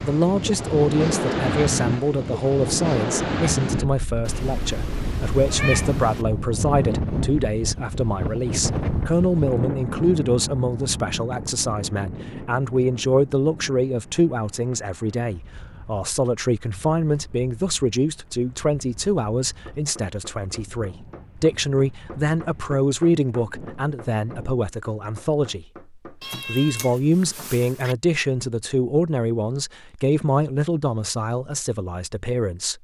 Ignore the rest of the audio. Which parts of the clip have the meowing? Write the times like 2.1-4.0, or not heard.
4.2-6.2, 26.2-27.9.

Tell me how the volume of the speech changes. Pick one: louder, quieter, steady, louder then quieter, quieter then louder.
steady.